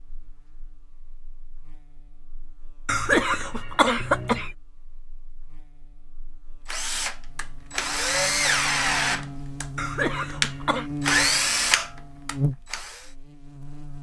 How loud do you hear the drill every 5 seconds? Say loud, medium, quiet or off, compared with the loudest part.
off, loud, loud.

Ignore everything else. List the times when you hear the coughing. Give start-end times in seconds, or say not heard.
2.9-4.5, 9.8-10.9.